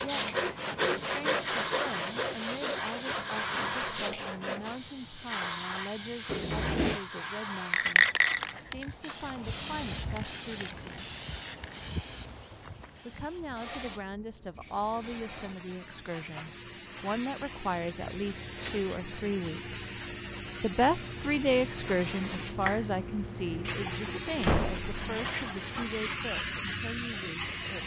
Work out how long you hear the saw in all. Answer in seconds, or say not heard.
5 s.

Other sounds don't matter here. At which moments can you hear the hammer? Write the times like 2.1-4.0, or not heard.
not heard.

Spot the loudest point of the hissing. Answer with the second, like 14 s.
8 s.